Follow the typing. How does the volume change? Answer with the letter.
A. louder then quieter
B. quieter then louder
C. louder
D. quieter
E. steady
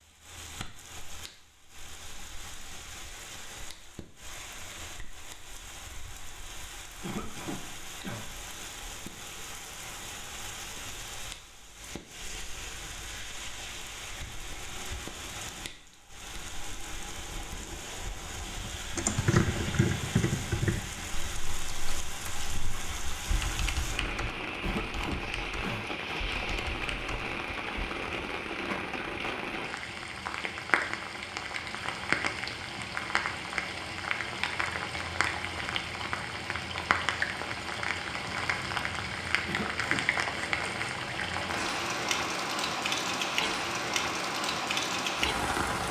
D.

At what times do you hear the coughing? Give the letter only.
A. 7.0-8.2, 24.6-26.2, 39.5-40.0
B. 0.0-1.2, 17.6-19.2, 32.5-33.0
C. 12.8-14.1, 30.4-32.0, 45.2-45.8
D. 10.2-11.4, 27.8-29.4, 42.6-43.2
A.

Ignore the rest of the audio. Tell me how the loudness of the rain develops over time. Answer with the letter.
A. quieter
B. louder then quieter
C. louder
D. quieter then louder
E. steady
C.